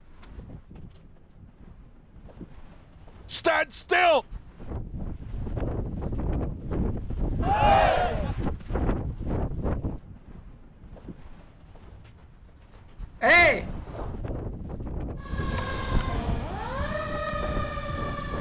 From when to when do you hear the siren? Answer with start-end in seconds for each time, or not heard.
15.2-18.3.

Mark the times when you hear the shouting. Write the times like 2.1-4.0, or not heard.
3.3-4.2, 7.4-8.3, 13.2-13.7.